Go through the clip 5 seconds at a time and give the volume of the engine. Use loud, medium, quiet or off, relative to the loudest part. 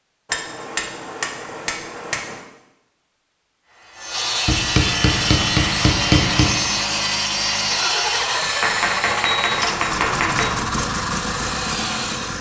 off, loud, loud.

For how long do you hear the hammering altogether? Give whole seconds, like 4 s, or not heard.
6 s.